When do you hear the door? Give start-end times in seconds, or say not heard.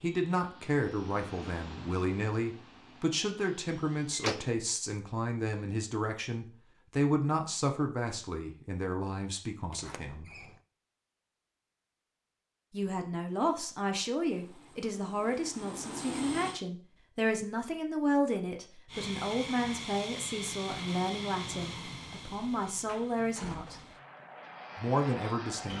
4.1-4.5, 9.7-10.6, 22.9-24.0.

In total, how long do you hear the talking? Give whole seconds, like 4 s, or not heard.
22 s.